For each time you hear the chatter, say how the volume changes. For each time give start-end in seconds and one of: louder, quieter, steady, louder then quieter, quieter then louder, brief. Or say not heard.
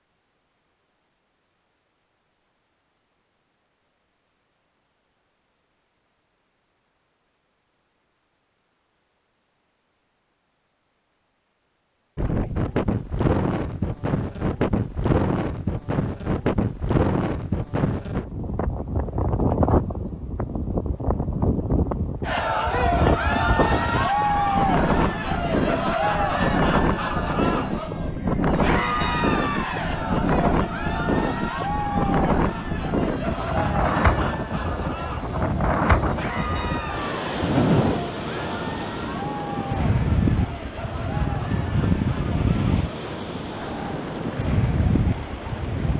22.2-45.9 quieter.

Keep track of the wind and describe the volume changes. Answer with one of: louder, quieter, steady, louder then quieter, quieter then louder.
steady.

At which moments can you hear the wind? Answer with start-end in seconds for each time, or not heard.
12.2-45.9.